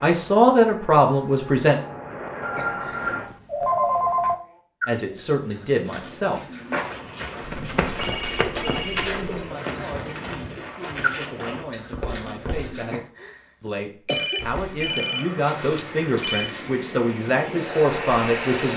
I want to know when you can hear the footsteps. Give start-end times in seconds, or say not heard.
6.7-12.8, 14.3-16.8.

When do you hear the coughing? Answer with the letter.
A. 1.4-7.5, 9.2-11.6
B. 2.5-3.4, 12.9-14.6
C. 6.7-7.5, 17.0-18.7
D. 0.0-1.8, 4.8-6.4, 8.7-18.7
B.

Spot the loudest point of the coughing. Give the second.
14 s.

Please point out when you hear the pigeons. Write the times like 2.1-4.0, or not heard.
3.5-13.0.